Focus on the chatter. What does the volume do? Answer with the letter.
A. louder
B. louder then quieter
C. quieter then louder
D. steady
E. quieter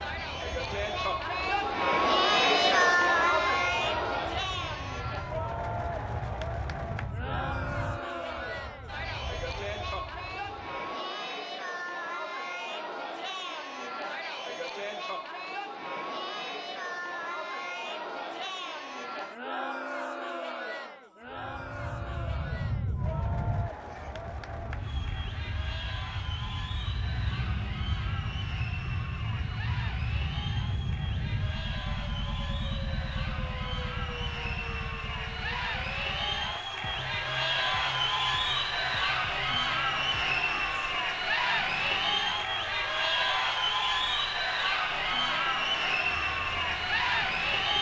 C.